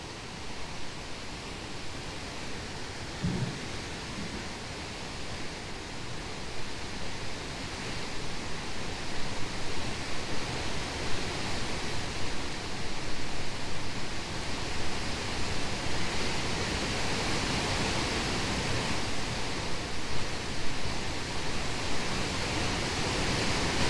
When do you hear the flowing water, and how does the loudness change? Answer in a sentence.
The flowing water can be heard from 0.0 to 23.8 s, getting louder.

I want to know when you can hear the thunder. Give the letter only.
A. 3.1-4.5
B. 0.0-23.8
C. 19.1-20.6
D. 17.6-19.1
A.